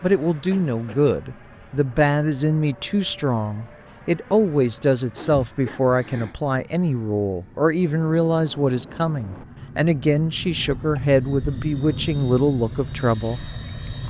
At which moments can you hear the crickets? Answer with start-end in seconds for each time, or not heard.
not heard.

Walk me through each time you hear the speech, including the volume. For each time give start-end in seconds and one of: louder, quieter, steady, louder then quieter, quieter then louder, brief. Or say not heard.
0.0-13.4 steady.